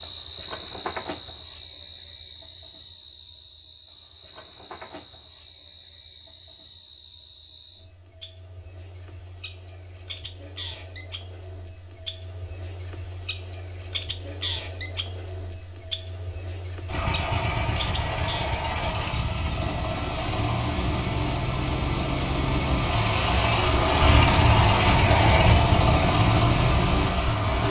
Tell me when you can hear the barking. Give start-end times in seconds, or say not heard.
not heard.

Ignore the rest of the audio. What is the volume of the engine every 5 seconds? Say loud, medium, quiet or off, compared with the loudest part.
off, off, off, medium, loud, loud.